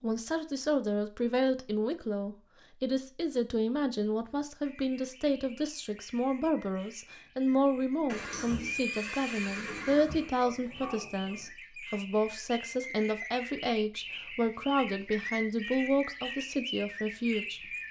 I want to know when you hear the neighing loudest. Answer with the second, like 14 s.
9 s.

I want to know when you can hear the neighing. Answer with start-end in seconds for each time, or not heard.
8.1-10.3.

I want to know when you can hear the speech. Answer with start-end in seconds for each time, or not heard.
0.0-17.7.